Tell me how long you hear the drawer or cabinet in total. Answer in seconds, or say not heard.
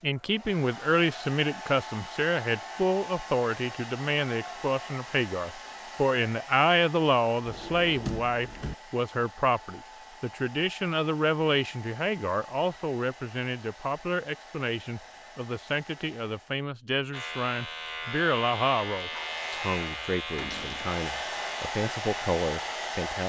2 s.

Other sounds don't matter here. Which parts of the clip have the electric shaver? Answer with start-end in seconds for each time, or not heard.
17.1-23.1.